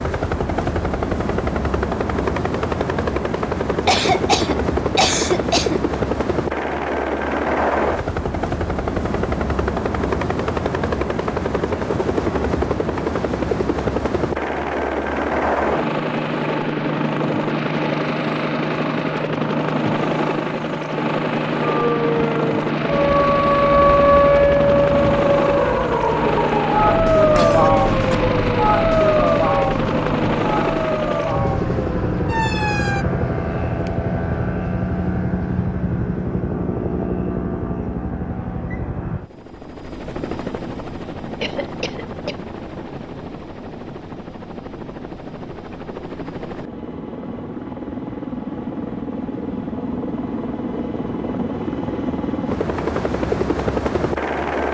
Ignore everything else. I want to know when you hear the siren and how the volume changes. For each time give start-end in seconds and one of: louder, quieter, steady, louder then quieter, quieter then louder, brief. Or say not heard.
21.6-33.0 quieter.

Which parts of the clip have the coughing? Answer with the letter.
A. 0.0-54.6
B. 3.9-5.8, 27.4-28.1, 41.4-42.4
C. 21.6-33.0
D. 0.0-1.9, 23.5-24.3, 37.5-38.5
B.